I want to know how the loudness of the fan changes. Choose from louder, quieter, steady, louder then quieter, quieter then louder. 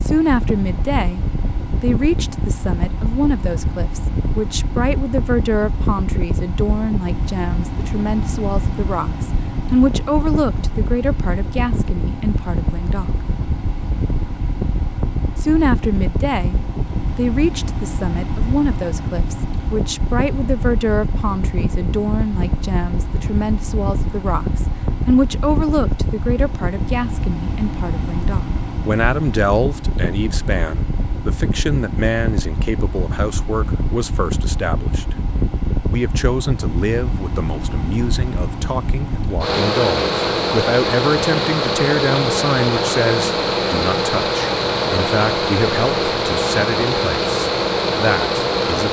louder.